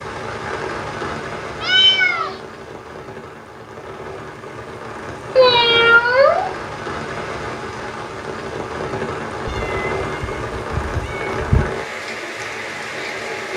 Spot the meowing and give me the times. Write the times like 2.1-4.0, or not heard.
1.6-2.4, 5.3-6.5, 9.4-11.7.